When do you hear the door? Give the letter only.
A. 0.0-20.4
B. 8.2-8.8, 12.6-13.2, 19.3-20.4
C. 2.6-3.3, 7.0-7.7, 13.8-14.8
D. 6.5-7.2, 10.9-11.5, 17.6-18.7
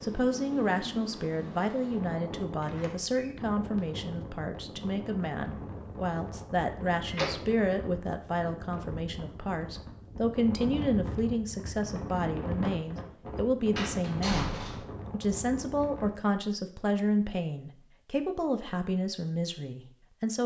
C.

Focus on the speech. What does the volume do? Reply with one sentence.
The volume of the speech stays about the same.